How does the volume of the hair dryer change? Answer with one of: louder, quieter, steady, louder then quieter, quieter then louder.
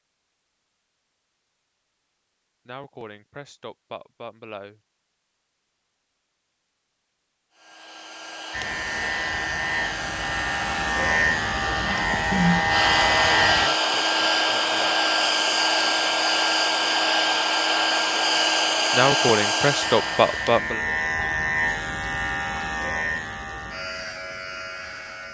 louder.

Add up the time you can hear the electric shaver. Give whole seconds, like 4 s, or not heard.
11 s.